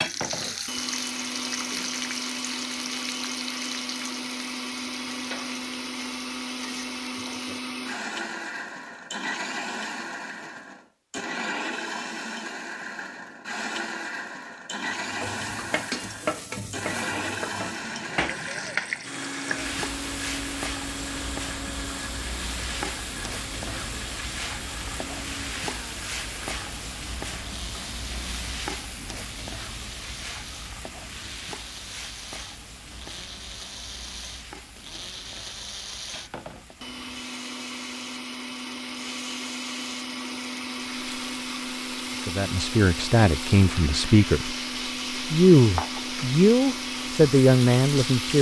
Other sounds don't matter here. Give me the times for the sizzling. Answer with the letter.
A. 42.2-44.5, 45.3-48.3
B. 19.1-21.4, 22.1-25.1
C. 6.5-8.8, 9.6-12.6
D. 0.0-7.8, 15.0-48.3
D.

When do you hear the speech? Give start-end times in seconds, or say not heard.
42.2-44.5, 45.3-48.3.